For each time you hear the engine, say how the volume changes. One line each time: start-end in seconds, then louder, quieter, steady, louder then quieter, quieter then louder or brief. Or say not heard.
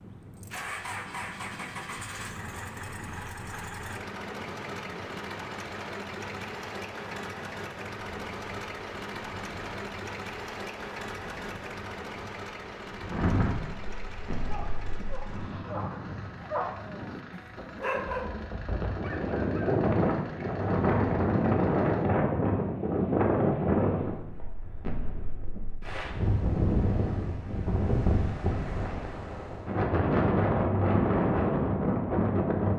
0.0-22.1 quieter.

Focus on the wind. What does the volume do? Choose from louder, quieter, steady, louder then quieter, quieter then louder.
louder.